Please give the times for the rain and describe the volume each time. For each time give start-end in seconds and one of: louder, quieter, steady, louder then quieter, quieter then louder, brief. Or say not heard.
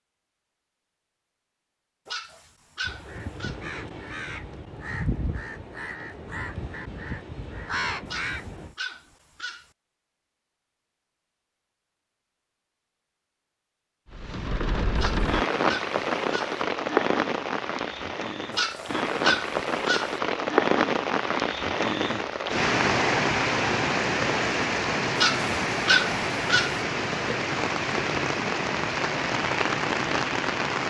14.1-30.8 steady.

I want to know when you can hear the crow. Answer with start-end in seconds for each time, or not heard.
2.9-8.8.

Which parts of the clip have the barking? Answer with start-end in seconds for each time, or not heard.
2.0-3.5, 8.1-9.7, 14.9-16.6, 18.5-20.1, 25.1-26.8.